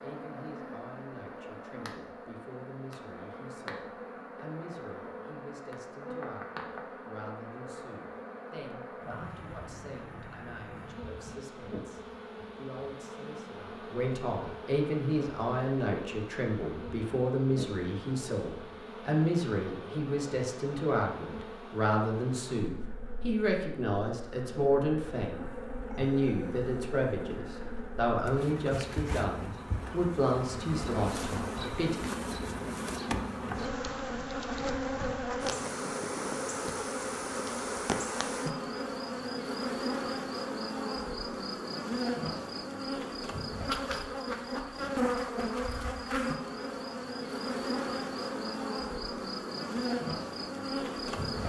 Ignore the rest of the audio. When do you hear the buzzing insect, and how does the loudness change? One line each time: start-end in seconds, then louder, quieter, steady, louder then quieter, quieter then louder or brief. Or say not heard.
0.0-51.4 louder.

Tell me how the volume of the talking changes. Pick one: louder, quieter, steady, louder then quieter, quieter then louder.
louder.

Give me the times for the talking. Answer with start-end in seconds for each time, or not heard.
0.0-32.1.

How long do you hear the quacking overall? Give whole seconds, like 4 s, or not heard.
not heard.